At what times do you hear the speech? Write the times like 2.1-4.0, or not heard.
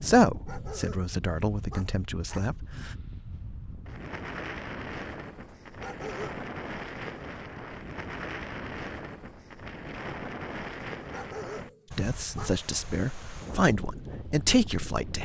0.0-2.9, 11.9-15.1.